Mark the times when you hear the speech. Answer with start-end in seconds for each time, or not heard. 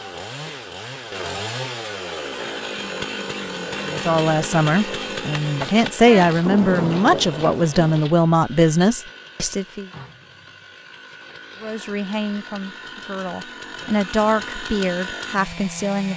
3.8-9.8, 11.6-16.1.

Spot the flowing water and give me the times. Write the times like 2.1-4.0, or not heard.
not heard.